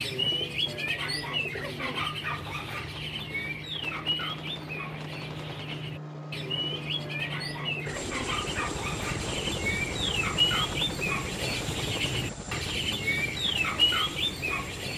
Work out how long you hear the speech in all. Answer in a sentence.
The speech can't be heard in this clip.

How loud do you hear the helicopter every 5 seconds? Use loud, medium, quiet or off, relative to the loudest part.
medium, loud, loud.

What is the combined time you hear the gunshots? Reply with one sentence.
You can hear the gunshots for 2 seconds altogether.